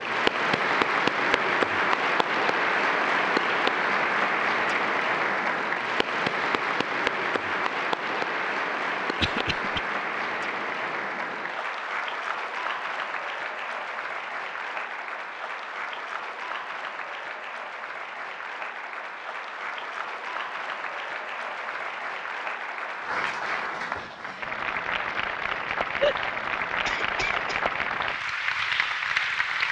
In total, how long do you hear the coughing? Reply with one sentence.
You can hear the coughing for 2 seconds altogether.